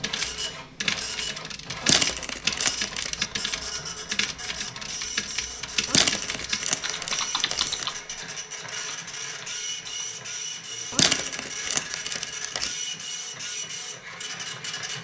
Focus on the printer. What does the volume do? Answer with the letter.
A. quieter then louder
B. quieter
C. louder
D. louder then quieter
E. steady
E.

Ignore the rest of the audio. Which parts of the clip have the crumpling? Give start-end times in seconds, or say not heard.
1.8-3.1, 5.8-7.9, 10.9-12.8.